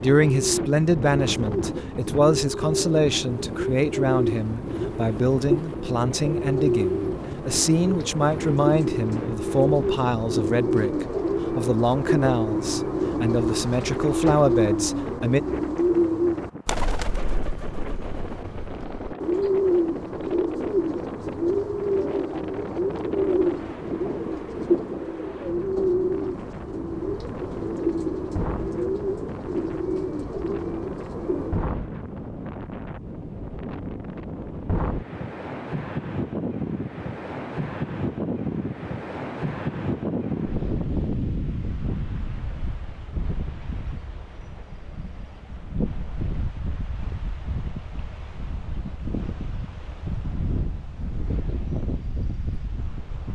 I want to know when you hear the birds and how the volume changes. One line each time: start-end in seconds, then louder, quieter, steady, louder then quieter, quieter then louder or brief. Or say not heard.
0.1-31.7 steady.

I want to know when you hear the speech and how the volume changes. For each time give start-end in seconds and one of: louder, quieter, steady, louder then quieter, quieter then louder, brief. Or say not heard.
0.0-15.4 steady.